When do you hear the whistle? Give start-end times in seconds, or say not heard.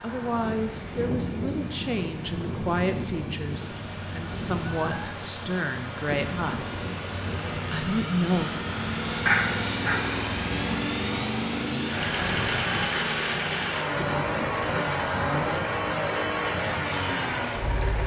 not heard.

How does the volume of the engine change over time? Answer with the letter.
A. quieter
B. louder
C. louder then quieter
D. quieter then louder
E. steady
B.